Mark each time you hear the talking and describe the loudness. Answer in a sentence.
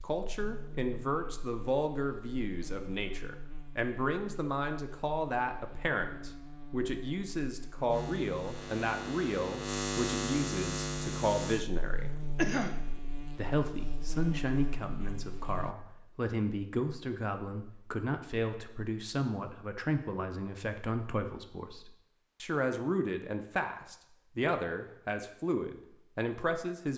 The talking can be heard from 0.0 to 12.1 s, at a steady volume; and from 13.3 to 26.9 s, at a steady volume.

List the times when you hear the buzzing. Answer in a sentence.
The buzzing can be heard from 0.0 to 15.8 s.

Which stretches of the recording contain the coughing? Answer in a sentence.
The coughing can be heard from 12.3 to 12.8 s.